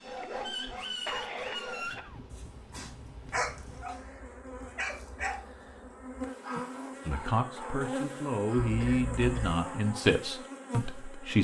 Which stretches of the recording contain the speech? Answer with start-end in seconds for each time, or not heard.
7.0-11.3.